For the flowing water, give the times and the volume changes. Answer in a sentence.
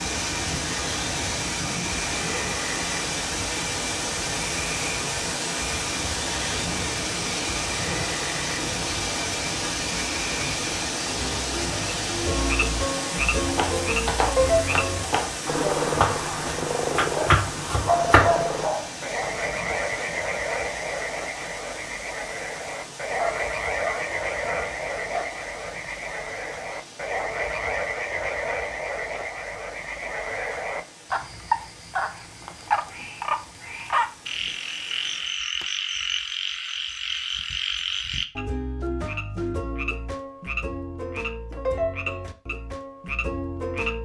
The flowing water can be heard from 0.0 to 35.4 s, getting quieter.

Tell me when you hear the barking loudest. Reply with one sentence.
The volume of the barking peaks at 18 seconds.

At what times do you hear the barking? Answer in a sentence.
You can hear the barking from 17.1 to 18.9 s and from 23.1 to 25.3 s.